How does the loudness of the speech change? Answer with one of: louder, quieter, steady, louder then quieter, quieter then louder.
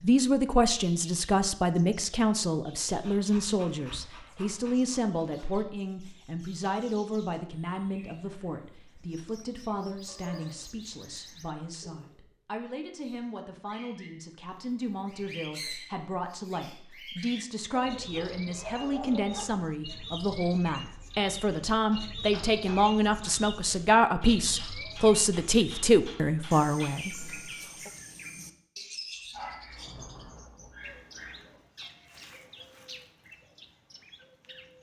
quieter then louder.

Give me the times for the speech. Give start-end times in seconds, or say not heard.
0.0-27.9.